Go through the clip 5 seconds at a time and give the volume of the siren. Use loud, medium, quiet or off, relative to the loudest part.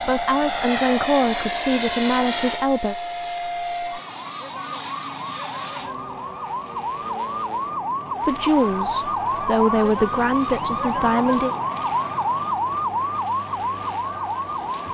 medium, loud, loud.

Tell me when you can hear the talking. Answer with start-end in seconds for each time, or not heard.
0.0-3.0, 8.2-11.6.